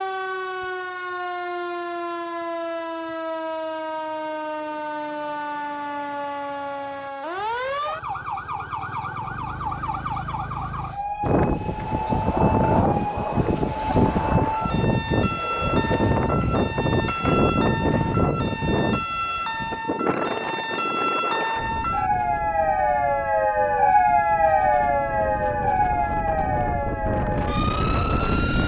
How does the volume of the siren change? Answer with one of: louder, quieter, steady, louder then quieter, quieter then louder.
louder.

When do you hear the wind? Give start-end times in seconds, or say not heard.
11.2-28.6.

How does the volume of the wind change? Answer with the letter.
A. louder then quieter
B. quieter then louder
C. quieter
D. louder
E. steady
B.